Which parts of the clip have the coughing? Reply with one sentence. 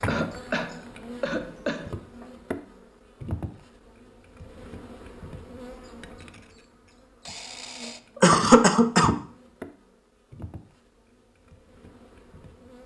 The coughing can be heard from 0.1 to 2.2 s and from 8.2 to 9.2 s.